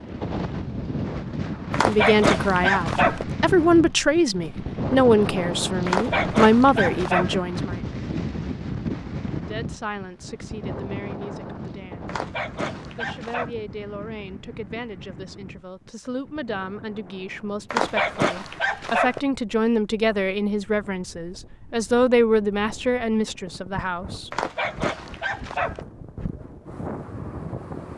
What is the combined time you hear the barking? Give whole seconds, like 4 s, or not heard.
8 s.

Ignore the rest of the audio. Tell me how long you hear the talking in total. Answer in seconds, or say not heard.
20 s.